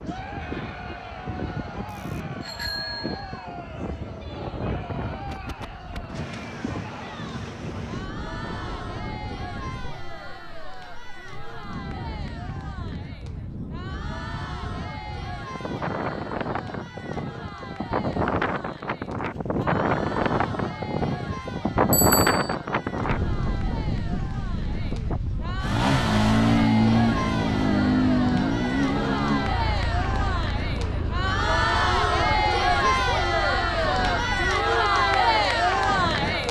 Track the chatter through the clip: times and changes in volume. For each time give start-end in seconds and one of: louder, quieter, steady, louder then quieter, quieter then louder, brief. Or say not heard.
0.0-36.4 louder.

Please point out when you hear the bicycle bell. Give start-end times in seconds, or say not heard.
1.9-3.5, 21.9-22.6.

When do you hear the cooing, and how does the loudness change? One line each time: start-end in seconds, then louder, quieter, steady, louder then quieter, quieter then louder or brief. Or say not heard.
not heard.